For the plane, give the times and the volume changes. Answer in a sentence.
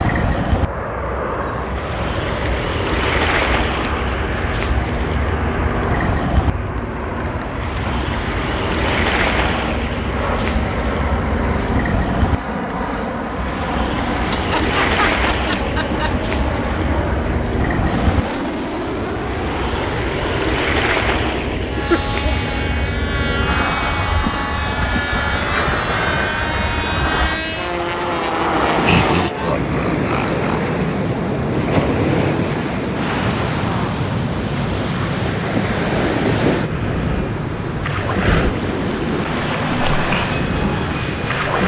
You can hear the plane from 0.0 to 41.6 s, at a steady volume.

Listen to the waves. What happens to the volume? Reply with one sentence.
The loudness of the waves stays about the same.